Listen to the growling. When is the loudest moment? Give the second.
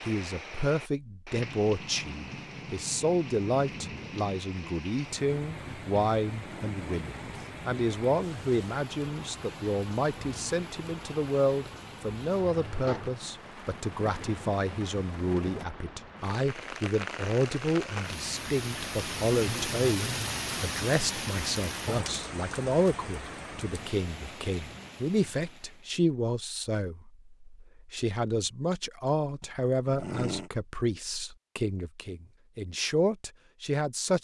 30 s.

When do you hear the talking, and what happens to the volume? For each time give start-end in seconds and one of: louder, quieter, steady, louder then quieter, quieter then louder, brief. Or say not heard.
0.0-34.1 steady.